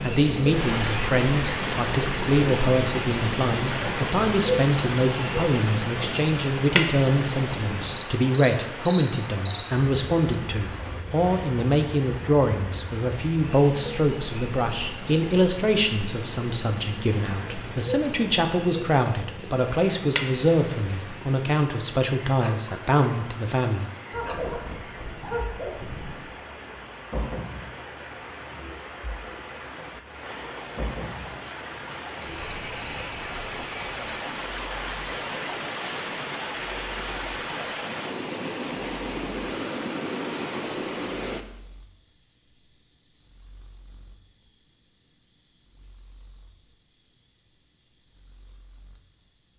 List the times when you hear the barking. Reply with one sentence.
You can hear the barking from 24.1 to 26.1 s.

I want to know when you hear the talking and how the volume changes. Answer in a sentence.
The talking can be heard from 0.0 to 23.9 s, at a steady volume.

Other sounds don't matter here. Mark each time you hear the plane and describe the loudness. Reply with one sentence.
The plane can't be heard in this clip.